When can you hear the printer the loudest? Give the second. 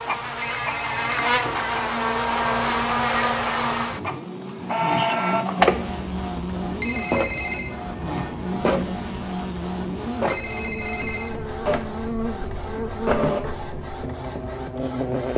5 s.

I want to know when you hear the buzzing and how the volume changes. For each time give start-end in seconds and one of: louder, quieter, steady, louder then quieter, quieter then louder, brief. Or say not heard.
0.0-15.3 quieter.